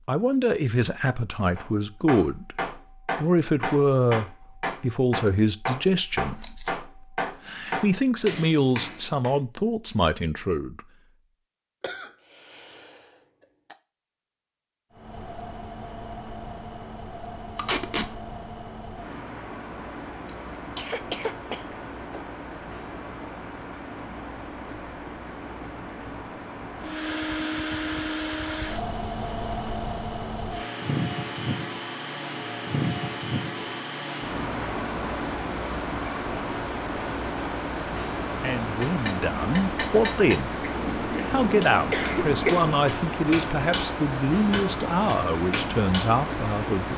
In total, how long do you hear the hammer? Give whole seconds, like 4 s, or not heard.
15 s.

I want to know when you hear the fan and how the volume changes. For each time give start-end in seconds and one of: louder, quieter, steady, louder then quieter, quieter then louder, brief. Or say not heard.
14.9-46.9 louder.